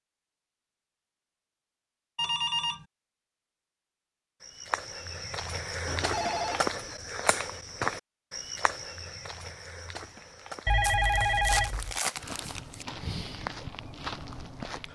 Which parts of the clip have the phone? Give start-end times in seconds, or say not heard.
2.1-2.9, 5.8-6.7, 10.7-11.9.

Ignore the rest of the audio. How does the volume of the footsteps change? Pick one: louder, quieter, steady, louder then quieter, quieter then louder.
quieter then louder.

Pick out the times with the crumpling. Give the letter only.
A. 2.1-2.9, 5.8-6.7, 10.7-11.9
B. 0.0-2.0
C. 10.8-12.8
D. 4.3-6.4
C.